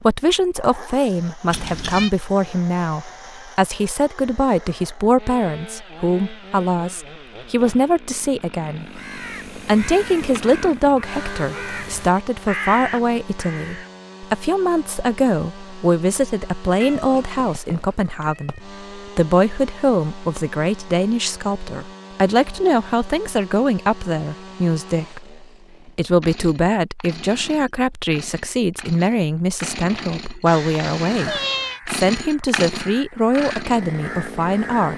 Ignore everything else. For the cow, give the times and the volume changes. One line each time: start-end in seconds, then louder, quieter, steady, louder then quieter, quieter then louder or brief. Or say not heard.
not heard.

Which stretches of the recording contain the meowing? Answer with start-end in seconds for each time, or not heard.
1.5-2.1, 16.8-18.6, 30.4-31.8.